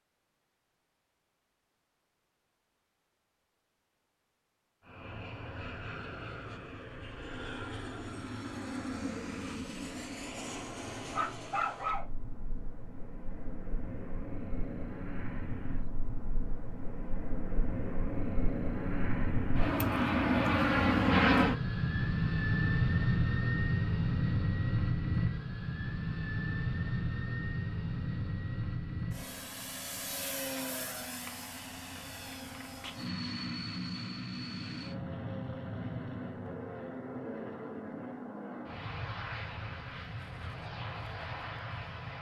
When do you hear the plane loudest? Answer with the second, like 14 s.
21 s.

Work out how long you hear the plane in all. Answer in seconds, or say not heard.
37 s.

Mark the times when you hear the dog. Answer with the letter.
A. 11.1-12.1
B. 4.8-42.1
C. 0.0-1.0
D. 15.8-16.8
A.